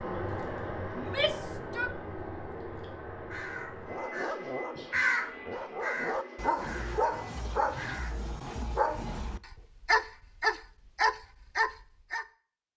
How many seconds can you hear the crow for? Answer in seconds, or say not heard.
4 s.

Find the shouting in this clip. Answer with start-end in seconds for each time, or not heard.
0.9-1.9.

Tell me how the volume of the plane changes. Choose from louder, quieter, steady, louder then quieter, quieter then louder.
quieter.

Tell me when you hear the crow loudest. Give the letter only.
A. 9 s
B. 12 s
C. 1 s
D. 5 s
D.